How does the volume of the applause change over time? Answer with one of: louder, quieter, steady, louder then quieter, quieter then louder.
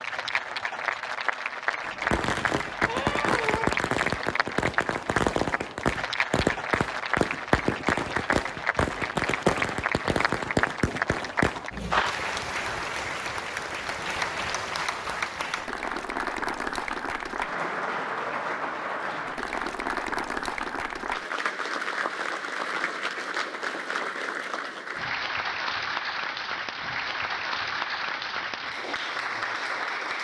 steady.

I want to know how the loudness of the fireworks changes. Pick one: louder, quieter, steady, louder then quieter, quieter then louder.
steady.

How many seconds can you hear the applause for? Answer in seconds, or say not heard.
30 s.